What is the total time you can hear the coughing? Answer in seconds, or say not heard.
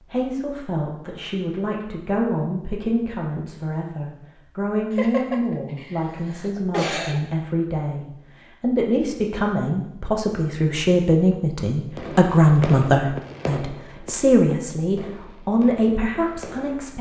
2 s.